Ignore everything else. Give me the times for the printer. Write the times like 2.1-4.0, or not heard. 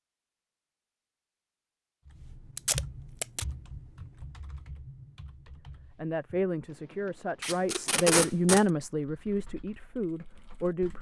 not heard.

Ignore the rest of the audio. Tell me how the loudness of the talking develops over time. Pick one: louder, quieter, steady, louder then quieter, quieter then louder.
louder then quieter.